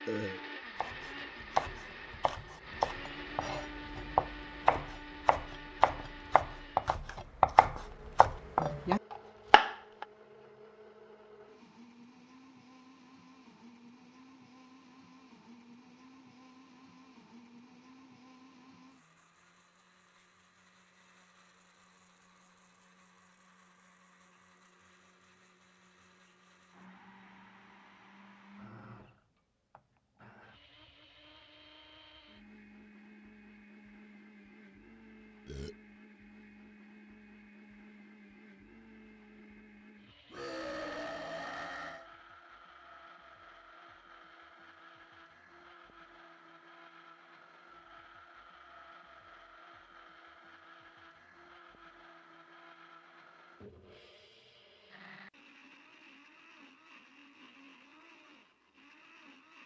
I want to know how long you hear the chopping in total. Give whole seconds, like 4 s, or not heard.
9 s.